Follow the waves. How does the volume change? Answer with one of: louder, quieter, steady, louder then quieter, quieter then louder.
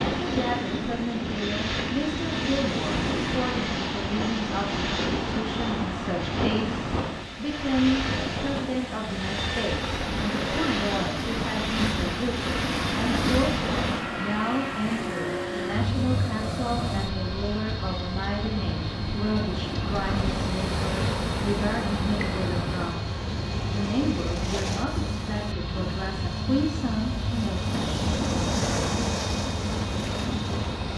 steady.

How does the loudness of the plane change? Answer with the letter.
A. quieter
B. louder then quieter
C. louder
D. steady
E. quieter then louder
D.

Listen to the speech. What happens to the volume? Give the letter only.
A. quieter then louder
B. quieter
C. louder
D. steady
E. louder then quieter
D.